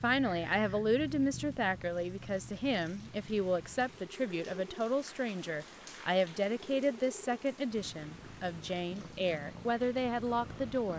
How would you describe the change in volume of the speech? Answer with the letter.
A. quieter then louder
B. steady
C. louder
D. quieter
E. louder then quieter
B.